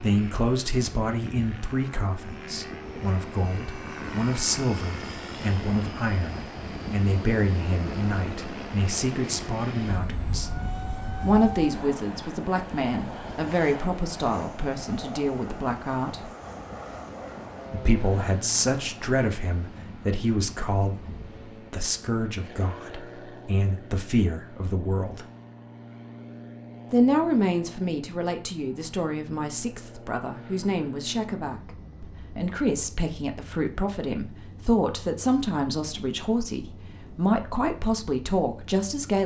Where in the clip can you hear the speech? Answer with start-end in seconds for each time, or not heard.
0.0-10.5, 11.2-16.3, 17.7-25.2, 26.9-39.2.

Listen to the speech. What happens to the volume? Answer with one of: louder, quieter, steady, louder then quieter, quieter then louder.
steady.